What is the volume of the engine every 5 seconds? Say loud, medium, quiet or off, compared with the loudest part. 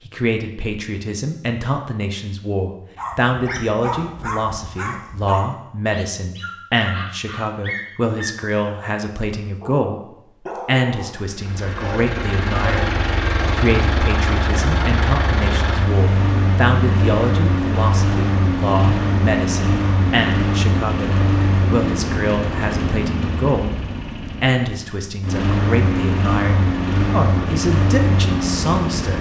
off, off, loud, loud, loud, loud.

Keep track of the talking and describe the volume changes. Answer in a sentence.
The loudness of the talking stays about the same.